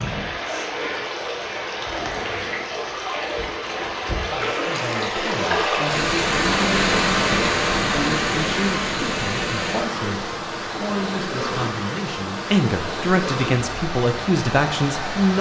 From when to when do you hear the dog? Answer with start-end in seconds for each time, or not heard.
not heard.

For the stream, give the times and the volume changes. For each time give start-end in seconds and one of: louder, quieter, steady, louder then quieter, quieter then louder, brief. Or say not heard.
0.0-15.3 louder then quieter.